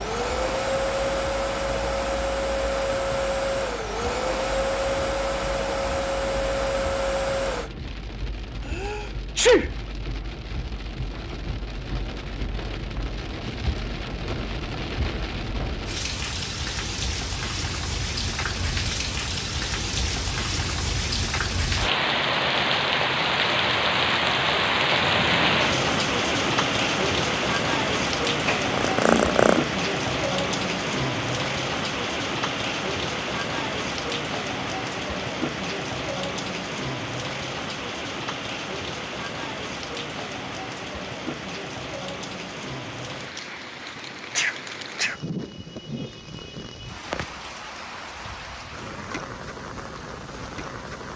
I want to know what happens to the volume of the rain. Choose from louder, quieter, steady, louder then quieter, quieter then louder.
louder then quieter.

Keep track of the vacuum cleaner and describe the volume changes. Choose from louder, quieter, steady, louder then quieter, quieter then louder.
steady.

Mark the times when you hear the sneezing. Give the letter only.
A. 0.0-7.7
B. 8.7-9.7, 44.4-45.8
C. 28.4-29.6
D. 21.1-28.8
B.